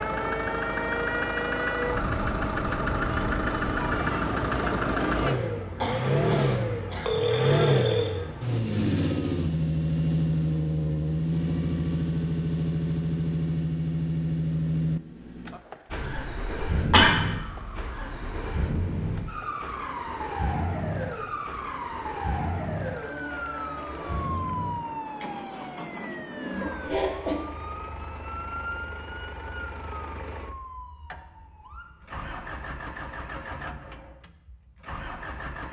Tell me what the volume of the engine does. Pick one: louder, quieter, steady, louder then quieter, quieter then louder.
quieter.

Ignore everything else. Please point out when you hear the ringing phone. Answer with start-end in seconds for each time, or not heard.
6.5-8.2.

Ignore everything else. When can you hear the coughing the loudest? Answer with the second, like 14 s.
17 s.